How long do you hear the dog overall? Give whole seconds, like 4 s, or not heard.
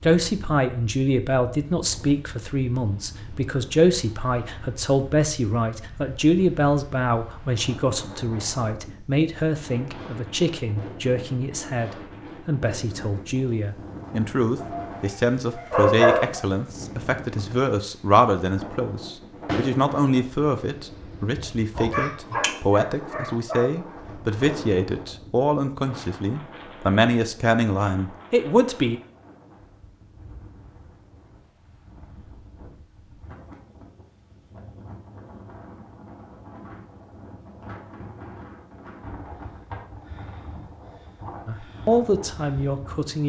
4 s.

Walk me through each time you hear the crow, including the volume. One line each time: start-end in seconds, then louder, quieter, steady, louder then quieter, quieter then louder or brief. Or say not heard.
not heard.